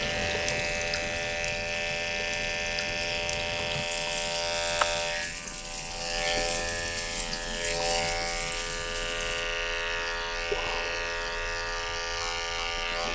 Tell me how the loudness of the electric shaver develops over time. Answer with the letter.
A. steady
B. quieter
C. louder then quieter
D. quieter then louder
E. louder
A.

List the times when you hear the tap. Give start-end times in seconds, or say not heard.
0.0-9.4.